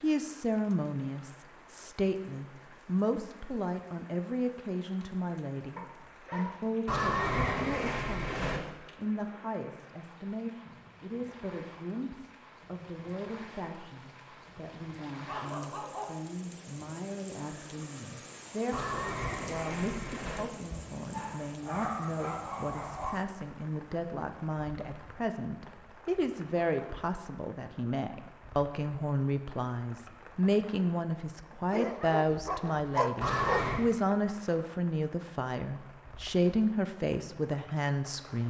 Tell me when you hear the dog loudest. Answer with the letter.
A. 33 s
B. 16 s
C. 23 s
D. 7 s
A.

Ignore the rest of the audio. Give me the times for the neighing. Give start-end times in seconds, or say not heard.
6.8-8.6, 18.7-20.4, 33.2-33.9.